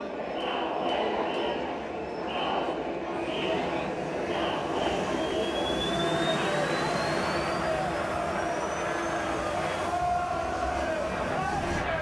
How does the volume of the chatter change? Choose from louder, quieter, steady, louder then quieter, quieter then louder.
steady.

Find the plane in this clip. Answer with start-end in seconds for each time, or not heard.
3.1-11.9.